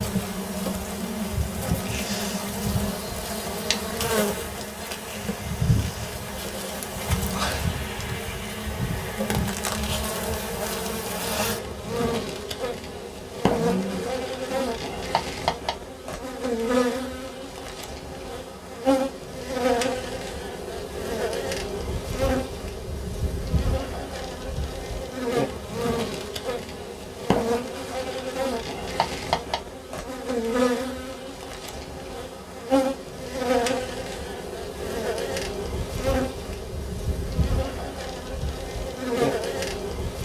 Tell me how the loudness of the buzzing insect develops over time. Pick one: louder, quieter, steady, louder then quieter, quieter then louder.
steady.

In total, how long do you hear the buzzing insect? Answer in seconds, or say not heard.
40 s.